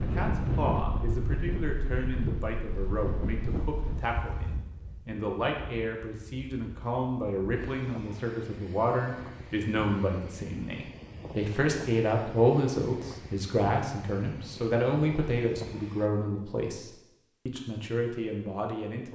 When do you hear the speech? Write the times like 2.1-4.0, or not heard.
0.0-19.1.